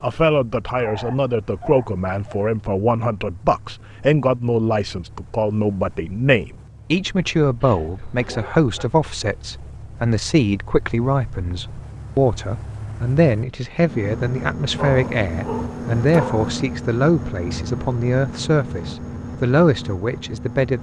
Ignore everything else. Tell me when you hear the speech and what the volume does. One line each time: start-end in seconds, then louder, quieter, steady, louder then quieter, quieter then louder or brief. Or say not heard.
0.0-20.7 steady.